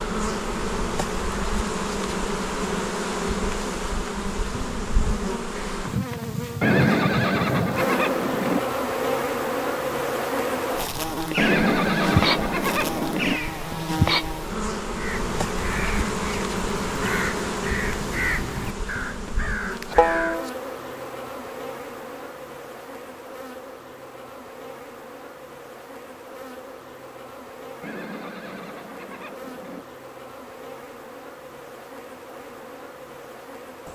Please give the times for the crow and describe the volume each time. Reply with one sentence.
You can hear the crow from 14.9 to 20.5 s, getting louder.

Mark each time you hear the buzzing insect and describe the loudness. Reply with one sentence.
The buzzing insect can be heard from 0.0 to 33.9 s, getting quieter.